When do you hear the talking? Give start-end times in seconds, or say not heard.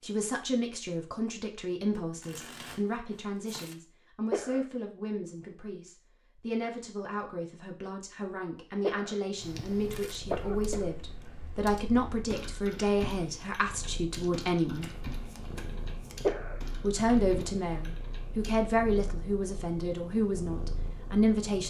0.0-14.8, 16.8-21.6.